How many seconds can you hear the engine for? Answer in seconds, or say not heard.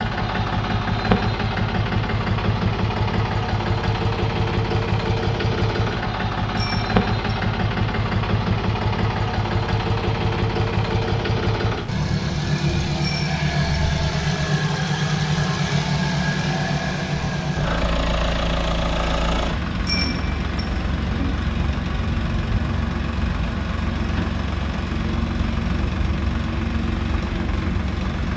28 s.